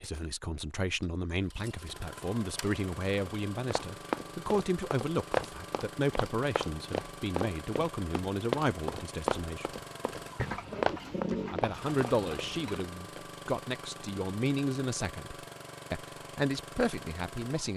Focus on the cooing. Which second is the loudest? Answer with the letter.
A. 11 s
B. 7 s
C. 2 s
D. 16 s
A.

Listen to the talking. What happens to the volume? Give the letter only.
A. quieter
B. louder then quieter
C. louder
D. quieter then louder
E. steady
E.